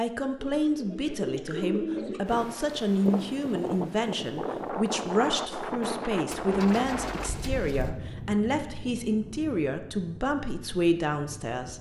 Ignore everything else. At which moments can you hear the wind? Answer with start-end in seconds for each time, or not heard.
2.2-11.7.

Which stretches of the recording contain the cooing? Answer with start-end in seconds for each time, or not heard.
0.3-2.4, 6.2-7.9.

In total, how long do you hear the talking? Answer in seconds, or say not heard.
12 s.